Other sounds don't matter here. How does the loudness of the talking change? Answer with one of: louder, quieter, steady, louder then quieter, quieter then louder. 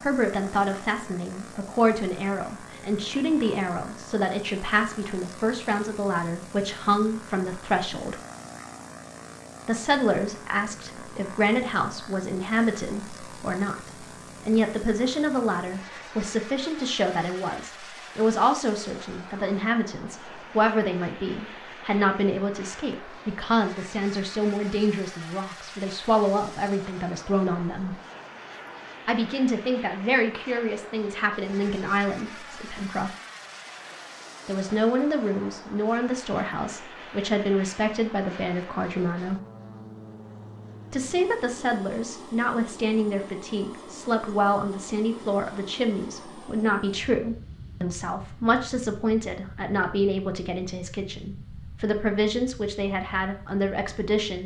steady.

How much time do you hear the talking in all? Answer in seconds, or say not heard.
49 s.